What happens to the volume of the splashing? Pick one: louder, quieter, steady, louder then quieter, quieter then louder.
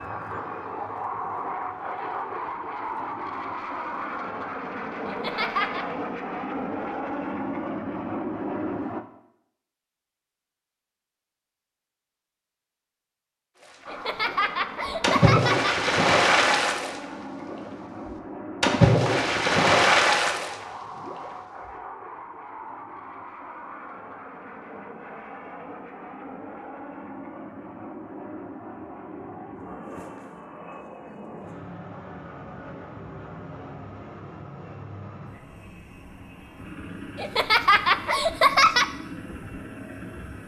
quieter then louder.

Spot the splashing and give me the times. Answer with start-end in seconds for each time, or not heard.
13.6-21.3.